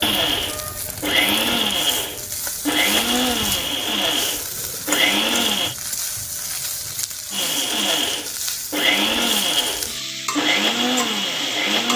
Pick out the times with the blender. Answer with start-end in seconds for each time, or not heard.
0.0-5.8, 7.3-11.9.